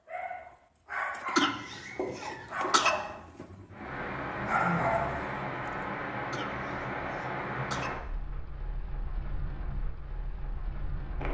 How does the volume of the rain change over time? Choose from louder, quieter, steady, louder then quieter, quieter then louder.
quieter.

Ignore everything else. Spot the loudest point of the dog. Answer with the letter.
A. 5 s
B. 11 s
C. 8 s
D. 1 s
A.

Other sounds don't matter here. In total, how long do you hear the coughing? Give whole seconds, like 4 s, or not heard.
3 s.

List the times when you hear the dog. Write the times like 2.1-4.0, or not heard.
0.1-5.3.